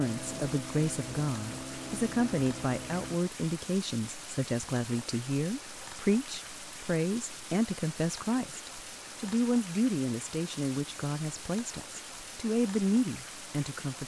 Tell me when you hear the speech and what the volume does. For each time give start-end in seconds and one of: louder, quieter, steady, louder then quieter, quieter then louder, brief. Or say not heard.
0.0-14.0 steady.